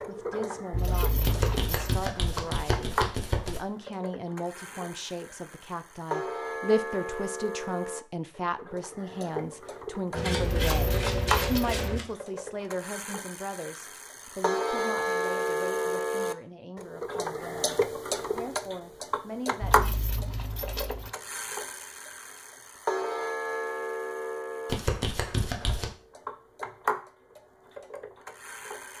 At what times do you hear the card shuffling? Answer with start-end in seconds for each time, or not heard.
1.2-3.6, 10.1-12.1, 24.6-25.9.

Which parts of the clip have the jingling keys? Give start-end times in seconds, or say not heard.
0.7-1.9, 10.3-11.8, 19.6-21.1.